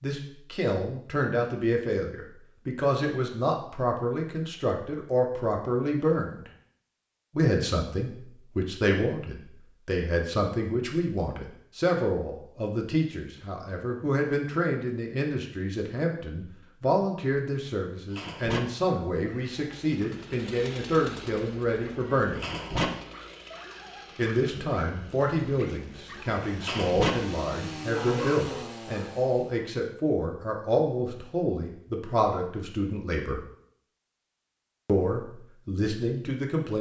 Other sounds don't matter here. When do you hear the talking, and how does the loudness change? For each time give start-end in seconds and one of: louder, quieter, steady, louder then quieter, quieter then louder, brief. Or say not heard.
0.0-6.5 steady
7.3-22.5 steady
24.1-33.4 steady
34.9-36.7 brief.